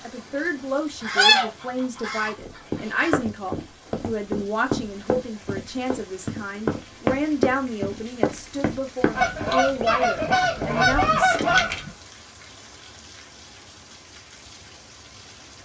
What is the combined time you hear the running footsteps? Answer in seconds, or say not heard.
9 s.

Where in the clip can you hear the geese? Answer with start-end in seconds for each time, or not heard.
1.0-3.1, 9.1-11.9.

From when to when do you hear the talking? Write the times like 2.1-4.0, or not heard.
0.0-11.5.